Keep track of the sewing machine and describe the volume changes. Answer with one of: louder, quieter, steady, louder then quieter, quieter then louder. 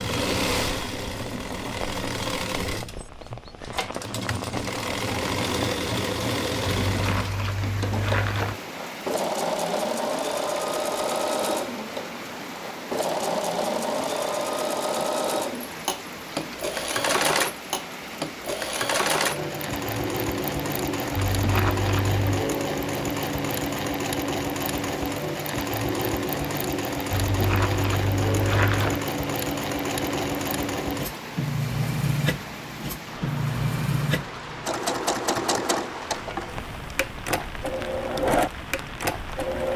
steady.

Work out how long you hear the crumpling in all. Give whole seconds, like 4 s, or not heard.
5 s.